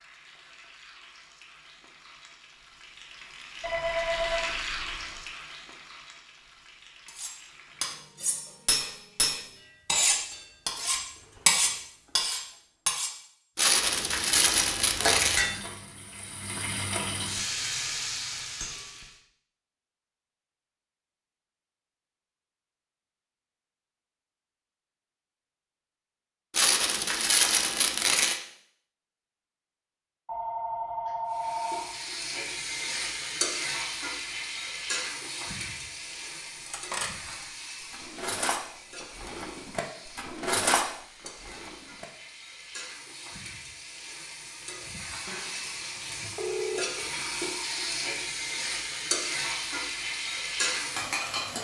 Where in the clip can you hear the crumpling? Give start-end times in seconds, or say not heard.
13.6-15.5, 26.5-28.4.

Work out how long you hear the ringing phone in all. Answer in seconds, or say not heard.
5 s.